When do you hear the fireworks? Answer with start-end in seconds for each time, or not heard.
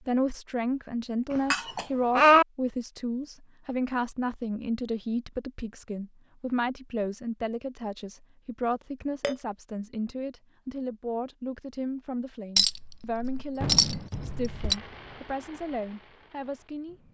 13.6-17.0.